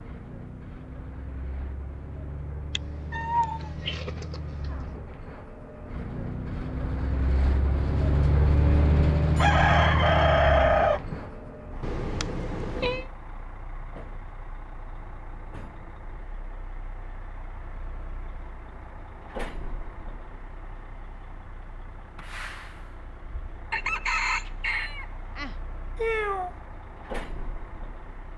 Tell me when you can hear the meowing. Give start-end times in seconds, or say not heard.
2.8-4.3, 11.8-13.1, 25.9-26.6.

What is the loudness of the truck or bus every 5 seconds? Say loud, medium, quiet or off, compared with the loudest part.
quiet, loud, medium, quiet, quiet, quiet.